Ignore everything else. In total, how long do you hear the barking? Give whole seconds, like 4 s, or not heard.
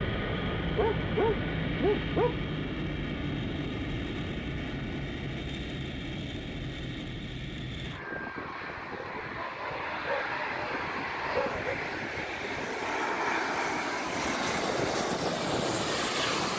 4 s.